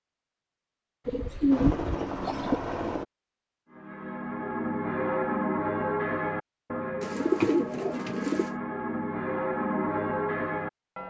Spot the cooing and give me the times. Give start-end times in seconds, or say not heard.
1.1-2.6, 7.0-8.6.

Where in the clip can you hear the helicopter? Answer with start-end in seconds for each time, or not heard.
1.5-3.0.